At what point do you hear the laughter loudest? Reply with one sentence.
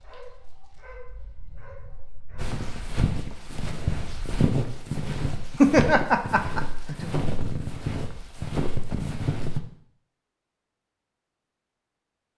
The volume of the laughter peaks at 6 seconds.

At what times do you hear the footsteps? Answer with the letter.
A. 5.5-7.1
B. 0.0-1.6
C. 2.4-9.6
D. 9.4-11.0
C.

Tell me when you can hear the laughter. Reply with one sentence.
You can hear the laughter from 5.5 to 7.1 s.